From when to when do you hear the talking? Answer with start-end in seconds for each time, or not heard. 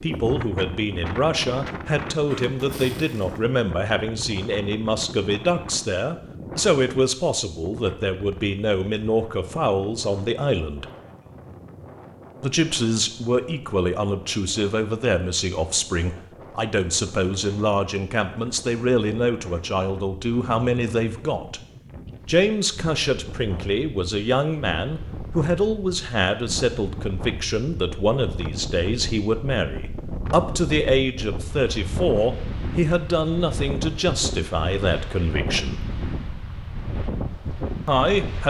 0.0-10.8, 12.4-21.6, 22.2-35.9, 37.9-38.4.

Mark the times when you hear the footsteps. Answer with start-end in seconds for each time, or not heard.
not heard.